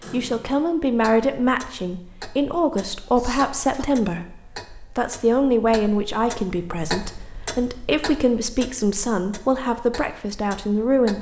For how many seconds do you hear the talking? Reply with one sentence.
The talking can be heard for 11 seconds in total.